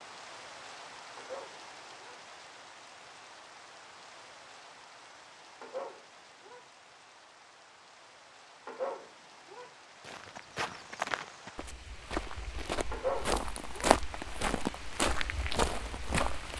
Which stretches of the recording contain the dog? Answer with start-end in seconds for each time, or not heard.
1.1-2.2, 5.6-6.7, 8.7-9.7, 12.9-13.9.